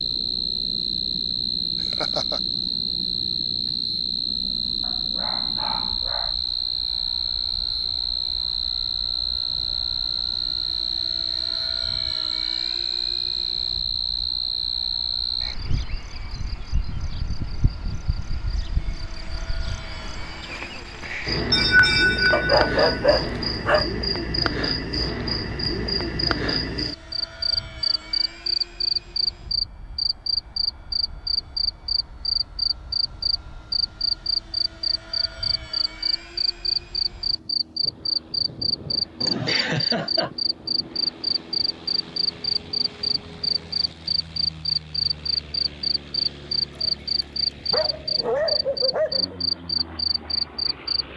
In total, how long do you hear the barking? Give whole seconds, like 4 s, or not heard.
6 s.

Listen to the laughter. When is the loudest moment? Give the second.
22 s.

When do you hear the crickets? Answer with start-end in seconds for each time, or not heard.
0.0-51.1.